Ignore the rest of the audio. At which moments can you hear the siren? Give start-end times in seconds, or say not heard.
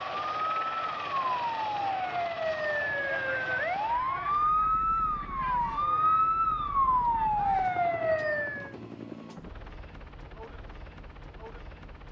0.0-8.8.